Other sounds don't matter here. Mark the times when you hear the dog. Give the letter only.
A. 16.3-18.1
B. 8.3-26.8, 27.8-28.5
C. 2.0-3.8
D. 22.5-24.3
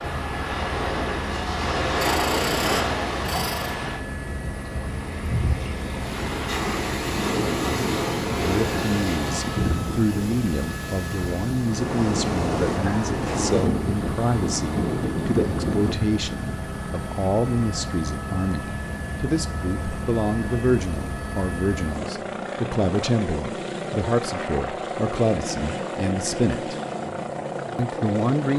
C.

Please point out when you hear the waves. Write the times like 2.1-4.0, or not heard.
0.0-15.9.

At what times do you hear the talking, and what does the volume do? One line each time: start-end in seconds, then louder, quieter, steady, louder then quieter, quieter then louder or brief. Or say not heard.
8.3-26.8 steady
27.8-28.5 brief.